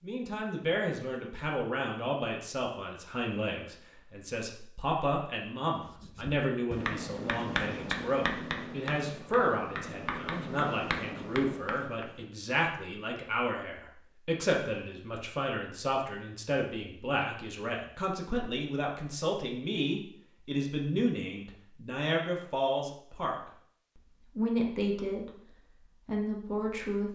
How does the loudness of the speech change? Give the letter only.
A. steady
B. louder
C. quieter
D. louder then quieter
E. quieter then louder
A.